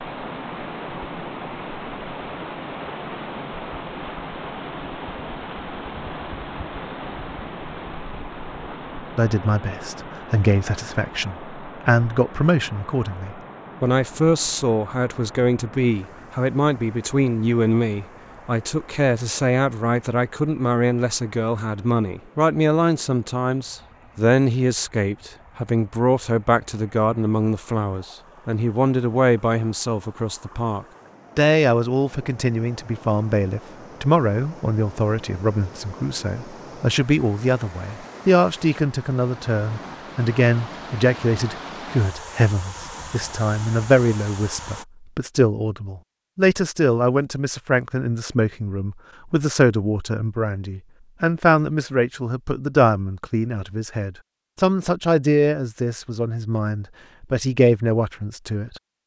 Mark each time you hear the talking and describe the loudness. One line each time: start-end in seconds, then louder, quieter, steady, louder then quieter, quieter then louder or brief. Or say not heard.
9.2-58.8 steady.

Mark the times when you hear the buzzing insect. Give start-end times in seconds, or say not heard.
not heard.